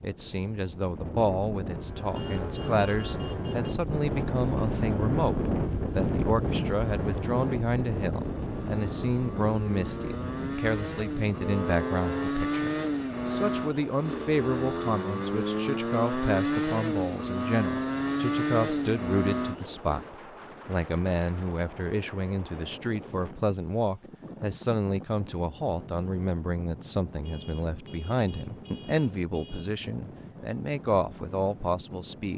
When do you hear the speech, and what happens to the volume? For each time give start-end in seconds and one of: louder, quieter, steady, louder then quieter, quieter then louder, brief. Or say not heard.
0.0-32.3 steady.